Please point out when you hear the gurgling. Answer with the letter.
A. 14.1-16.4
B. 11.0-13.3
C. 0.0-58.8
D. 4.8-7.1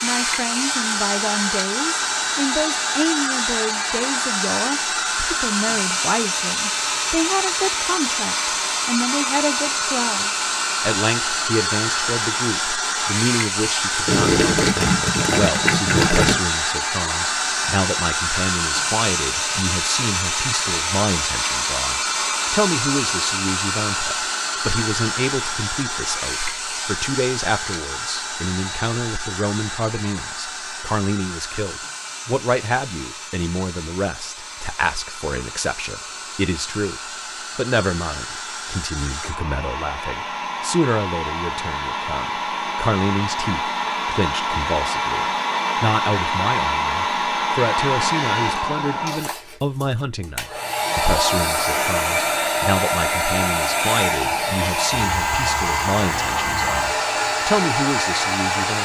A.